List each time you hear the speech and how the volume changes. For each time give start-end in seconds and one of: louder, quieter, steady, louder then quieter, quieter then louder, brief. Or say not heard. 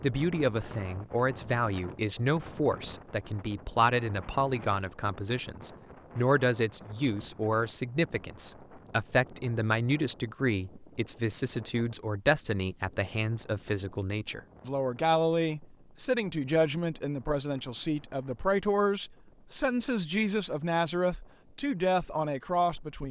0.0-23.0 steady.